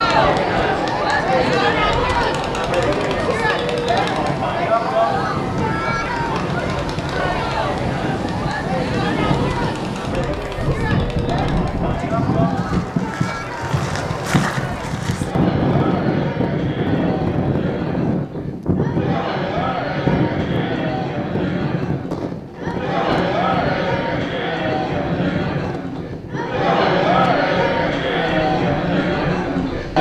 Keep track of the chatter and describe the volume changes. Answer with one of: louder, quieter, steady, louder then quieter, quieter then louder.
quieter then louder.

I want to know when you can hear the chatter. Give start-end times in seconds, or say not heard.
0.0-29.9.